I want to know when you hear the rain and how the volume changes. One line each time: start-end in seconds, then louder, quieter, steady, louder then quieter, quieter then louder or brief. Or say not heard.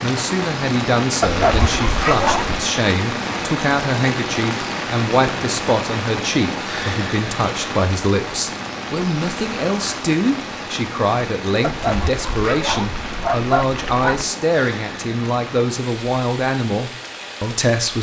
0.0-17.9 quieter.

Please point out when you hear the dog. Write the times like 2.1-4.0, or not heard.
1.2-2.6, 11.6-14.2.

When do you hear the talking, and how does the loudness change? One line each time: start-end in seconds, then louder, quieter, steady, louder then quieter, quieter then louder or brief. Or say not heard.
0.0-17.9 steady.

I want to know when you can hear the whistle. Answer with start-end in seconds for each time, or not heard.
not heard.